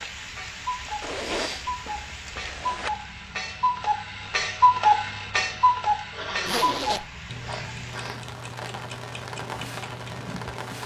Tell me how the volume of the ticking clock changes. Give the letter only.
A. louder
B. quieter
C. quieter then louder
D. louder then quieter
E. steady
D.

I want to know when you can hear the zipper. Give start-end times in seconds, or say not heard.
1.0-2.9, 6.5-7.1.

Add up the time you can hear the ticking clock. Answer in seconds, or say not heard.
11 s.